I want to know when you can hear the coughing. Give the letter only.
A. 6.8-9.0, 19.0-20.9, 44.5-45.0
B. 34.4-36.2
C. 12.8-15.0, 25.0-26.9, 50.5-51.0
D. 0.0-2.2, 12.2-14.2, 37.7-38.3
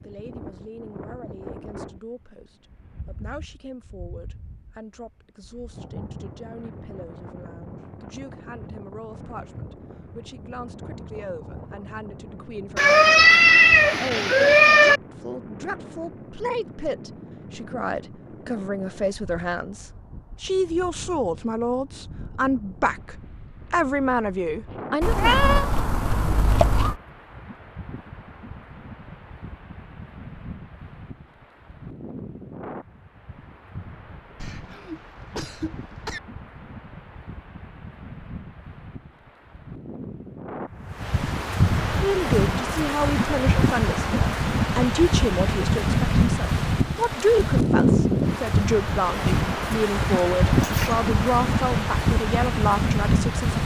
B.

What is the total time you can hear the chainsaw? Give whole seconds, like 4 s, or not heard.
not heard.